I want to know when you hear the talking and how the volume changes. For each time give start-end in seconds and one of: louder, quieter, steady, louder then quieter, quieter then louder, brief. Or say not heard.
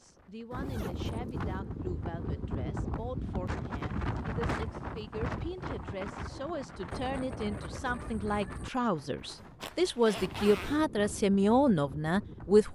0.0-12.6 louder.